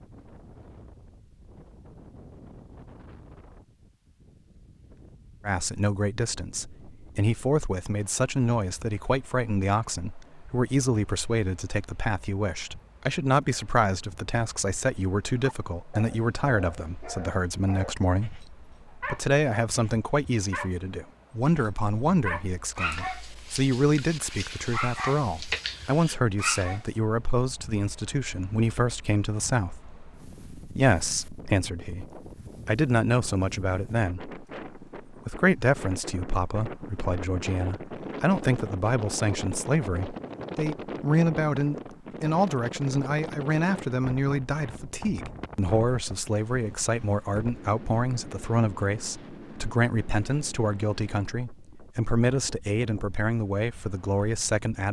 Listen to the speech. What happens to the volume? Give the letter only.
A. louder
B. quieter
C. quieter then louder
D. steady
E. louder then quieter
D.